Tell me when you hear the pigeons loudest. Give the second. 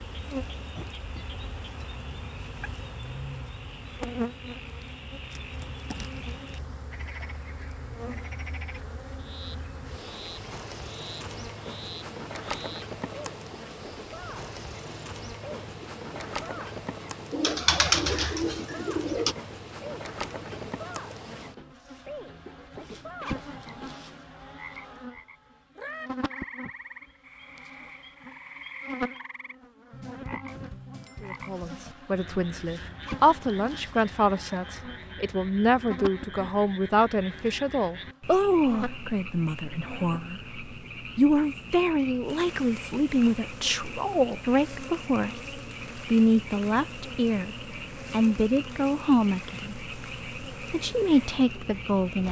18 s.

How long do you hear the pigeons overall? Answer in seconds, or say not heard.
2 s.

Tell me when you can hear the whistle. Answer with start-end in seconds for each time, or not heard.
not heard.